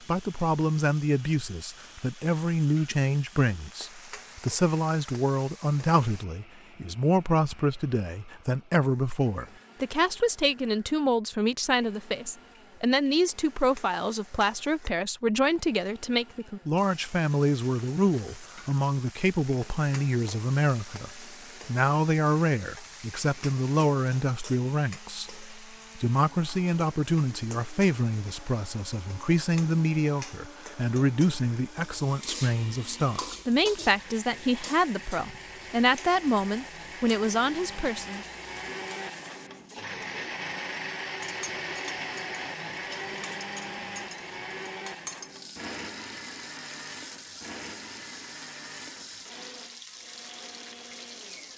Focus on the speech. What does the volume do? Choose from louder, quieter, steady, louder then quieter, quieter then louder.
steady.